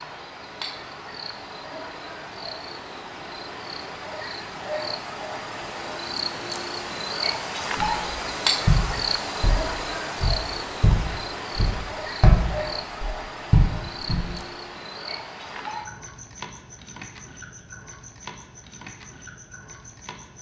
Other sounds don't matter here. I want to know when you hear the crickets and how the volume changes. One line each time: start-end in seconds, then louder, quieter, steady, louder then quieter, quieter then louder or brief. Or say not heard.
0.0-20.3 louder then quieter.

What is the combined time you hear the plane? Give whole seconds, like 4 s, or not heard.
not heard.